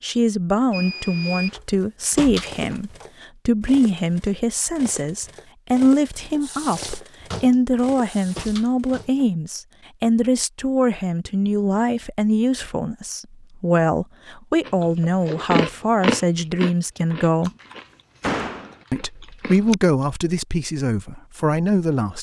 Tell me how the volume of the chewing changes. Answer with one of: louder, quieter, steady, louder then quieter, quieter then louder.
quieter.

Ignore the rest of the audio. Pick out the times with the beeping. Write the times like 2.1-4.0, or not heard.
0.7-1.6.